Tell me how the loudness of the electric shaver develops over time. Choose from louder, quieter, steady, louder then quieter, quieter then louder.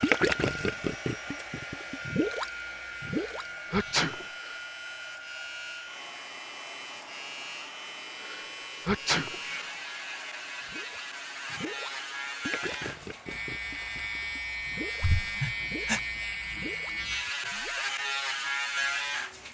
louder.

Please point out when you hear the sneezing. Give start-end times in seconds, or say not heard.
3.0-4.5, 8.2-9.7, 15.0-16.0.